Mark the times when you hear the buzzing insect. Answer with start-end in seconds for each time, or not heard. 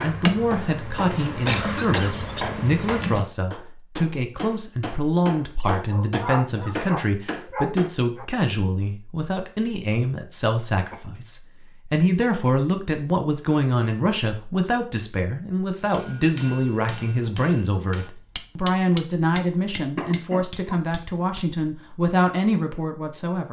0.0-3.2.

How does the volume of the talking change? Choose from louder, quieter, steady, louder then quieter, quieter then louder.
steady.